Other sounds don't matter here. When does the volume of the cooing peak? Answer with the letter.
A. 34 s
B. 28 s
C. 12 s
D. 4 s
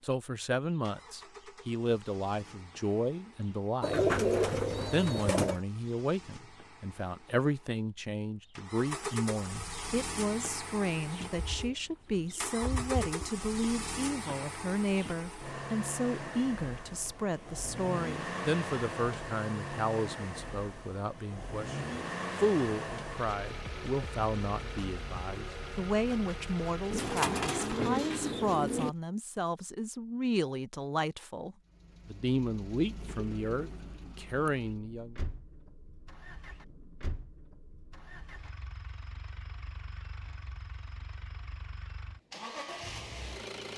D.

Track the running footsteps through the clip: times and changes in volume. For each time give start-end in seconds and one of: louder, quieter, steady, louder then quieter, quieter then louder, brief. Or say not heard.
not heard.